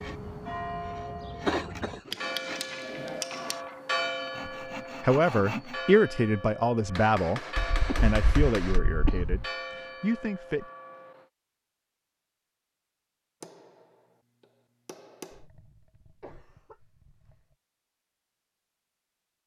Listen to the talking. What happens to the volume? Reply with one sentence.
The loudness of the talking goes down.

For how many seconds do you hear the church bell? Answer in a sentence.
The church bell can be heard for 11 seconds in total.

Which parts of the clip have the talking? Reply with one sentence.
You can hear the talking from 4.5 to 10.7 s.